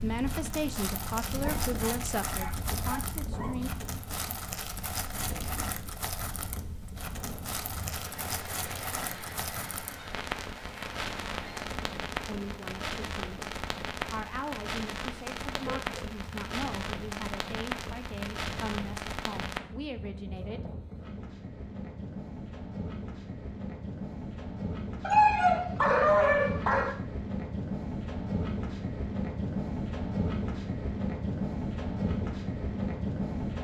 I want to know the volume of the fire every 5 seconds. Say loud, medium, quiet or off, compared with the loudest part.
loud, loud, loud, loud, off, off, off.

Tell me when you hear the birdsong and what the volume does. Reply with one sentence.
You can't hear the birdsong here.